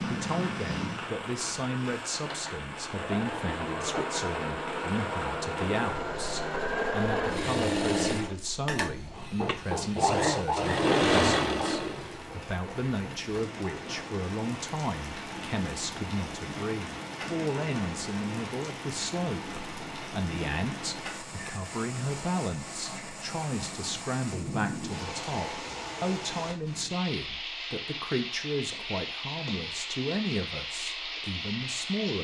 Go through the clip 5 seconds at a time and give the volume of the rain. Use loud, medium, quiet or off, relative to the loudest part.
loud, medium, medium, loud, loud, loud, loud.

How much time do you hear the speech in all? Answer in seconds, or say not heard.
32 s.